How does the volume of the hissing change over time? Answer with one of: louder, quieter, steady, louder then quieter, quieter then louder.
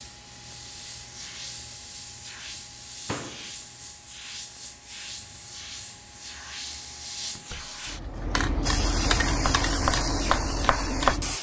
louder.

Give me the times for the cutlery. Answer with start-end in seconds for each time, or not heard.
not heard.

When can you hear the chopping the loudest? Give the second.
11 s.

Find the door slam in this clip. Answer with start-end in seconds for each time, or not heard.
3.0-3.5, 7.3-7.8.